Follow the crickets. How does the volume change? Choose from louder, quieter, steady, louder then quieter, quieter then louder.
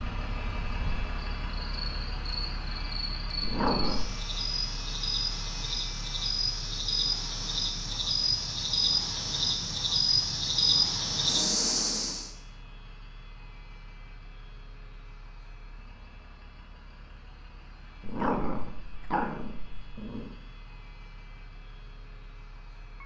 louder.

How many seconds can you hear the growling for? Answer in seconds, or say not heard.
3 s.